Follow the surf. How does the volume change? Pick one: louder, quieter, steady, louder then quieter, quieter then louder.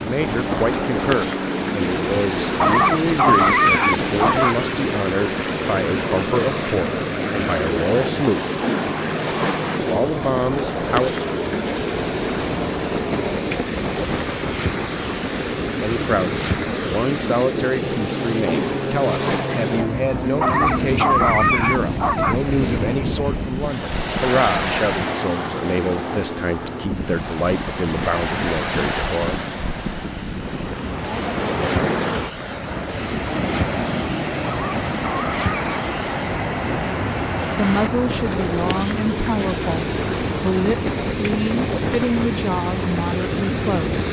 steady.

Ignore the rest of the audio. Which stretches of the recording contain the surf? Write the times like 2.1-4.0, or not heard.
0.0-44.0.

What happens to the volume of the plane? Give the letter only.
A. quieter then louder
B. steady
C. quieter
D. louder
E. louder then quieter
B.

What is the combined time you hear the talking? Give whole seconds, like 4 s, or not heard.
30 s.